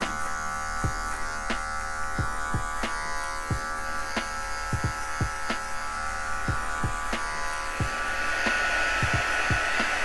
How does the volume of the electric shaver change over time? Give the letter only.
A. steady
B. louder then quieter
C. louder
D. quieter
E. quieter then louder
A.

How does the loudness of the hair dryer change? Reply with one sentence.
The volume of the hair dryer goes up.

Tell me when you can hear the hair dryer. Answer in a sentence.
You can hear the hair dryer from 3.8 to 10.0 s.